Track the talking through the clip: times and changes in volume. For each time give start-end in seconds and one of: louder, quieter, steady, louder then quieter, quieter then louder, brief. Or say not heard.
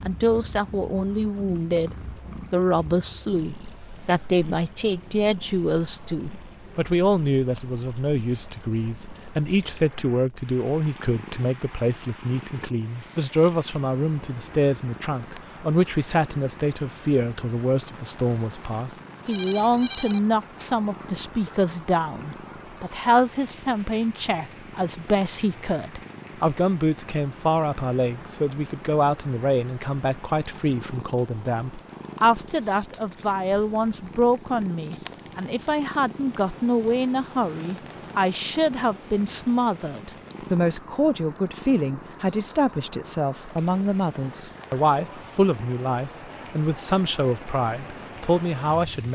0.1-49.0 steady.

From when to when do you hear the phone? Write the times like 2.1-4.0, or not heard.
19.2-20.7.